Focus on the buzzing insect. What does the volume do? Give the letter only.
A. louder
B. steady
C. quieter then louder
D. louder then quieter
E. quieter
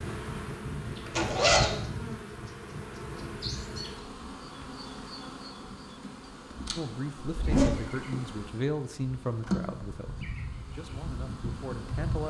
C.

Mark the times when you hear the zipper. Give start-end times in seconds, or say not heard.
1.1-1.8, 7.2-8.1.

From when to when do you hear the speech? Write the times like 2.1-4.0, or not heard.
6.8-12.2.